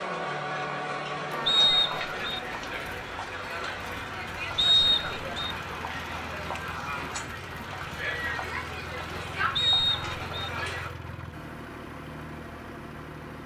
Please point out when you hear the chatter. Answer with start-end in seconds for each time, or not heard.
0.0-10.9.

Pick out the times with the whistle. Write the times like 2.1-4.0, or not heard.
1.4-2.4, 4.5-5.5, 9.6-10.5.